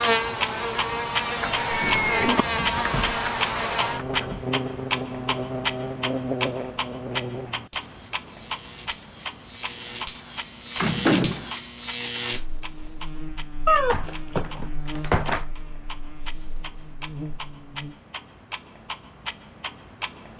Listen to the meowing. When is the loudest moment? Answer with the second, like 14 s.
14 s.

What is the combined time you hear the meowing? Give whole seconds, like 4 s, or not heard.
2 s.